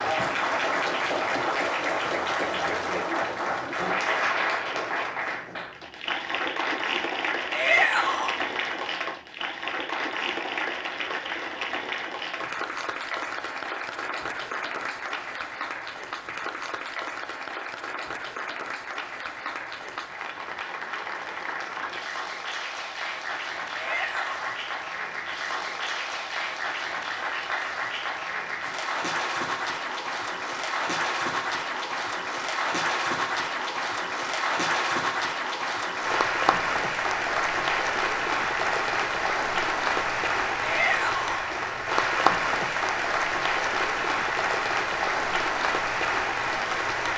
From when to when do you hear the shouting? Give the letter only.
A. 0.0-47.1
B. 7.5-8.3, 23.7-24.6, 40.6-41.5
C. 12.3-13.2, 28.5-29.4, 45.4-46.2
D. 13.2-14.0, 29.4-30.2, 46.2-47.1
B.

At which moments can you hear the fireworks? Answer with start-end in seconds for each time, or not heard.
not heard.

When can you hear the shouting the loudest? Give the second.
8 s.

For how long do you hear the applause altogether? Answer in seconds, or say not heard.
47 s.